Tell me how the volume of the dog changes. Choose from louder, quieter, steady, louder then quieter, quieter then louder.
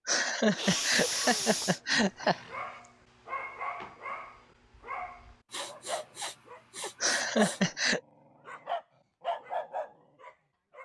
louder.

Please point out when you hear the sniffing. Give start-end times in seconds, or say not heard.
0.5-2.8, 5.5-7.6.